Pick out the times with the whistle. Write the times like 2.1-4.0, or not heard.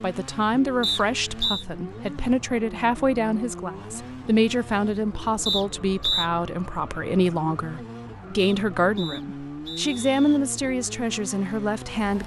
0.8-1.6, 5.5-6.3, 8.3-10.4.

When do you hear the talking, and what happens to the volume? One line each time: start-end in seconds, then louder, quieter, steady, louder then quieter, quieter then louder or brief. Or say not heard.
0.0-12.2 steady.